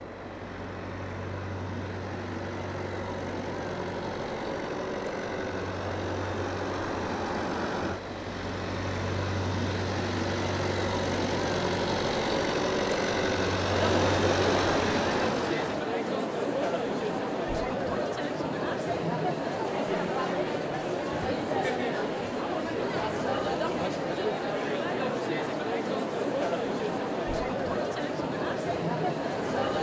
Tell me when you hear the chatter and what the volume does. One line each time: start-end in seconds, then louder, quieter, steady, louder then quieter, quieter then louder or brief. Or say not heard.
13.7-29.7 steady.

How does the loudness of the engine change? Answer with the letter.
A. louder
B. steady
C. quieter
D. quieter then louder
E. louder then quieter
A.